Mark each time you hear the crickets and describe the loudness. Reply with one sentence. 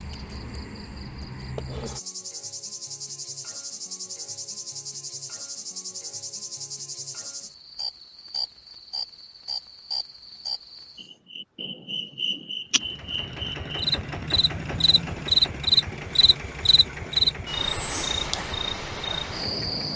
You can hear the crickets from 0.0 to 19.9 s, getting louder.